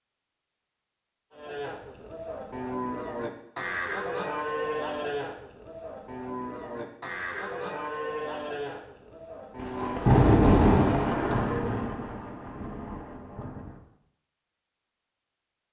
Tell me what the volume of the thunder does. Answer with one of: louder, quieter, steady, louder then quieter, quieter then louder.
quieter.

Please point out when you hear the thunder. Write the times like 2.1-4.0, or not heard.
9.6-13.8.